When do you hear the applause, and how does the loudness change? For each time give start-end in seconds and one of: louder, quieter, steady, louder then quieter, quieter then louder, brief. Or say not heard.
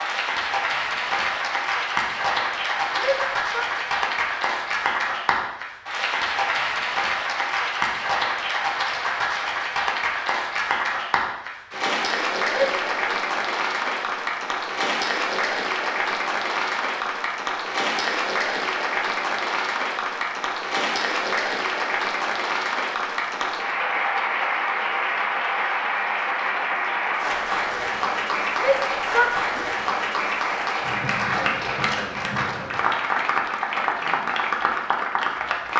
0.0-35.7 steady.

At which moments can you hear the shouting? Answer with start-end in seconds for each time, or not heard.
3.0-3.6, 12.5-12.9, 28.6-29.7.